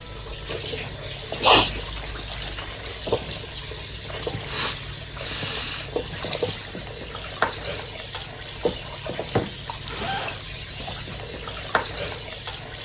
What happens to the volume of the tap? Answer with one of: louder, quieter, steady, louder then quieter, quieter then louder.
steady.